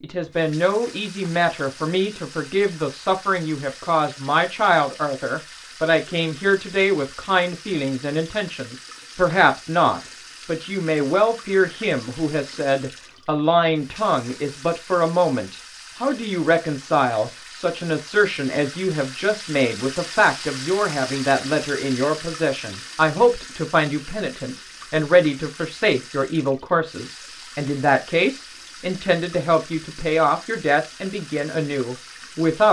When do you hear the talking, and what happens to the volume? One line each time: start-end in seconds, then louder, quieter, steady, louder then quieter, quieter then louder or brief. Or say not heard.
0.0-32.6 steady.